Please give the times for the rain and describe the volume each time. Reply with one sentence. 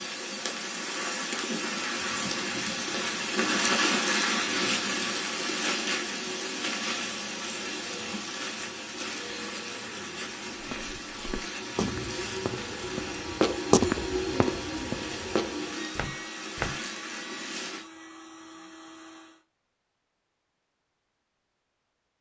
The rain can be heard from 0.0 to 17.9 s, getting quieter.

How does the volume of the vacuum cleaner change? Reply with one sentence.
The volume of the vacuum cleaner goes up, then down.